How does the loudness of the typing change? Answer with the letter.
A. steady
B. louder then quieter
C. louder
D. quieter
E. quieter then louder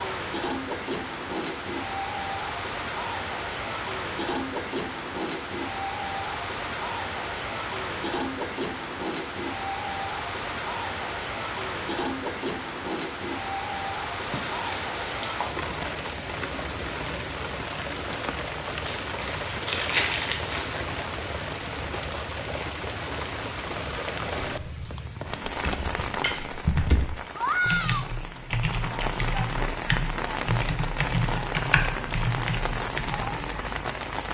A.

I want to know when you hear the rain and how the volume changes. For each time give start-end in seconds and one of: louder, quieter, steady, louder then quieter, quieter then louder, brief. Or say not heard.
0.0-34.2 steady.